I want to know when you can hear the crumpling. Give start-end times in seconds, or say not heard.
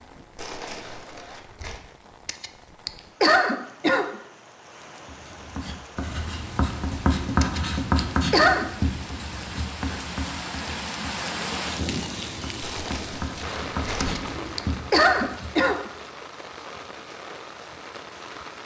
0.3-1.8, 12.6-14.2.